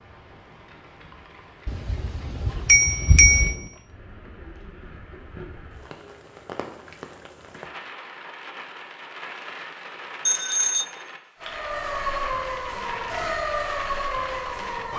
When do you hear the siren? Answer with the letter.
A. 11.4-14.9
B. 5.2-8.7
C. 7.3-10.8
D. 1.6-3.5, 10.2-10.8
A.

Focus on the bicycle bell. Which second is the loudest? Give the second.
3 s.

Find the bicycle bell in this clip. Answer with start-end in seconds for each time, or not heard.
1.6-3.5, 10.2-10.8.